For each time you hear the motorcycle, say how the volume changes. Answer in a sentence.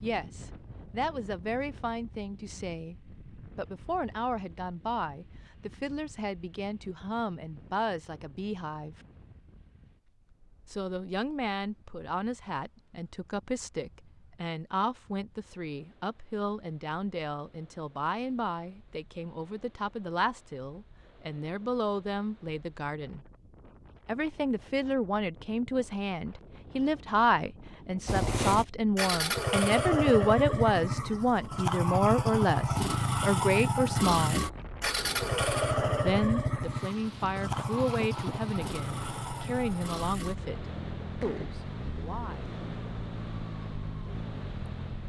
You can hear the motorcycle from 28.1 to 45.0 s, getting quieter.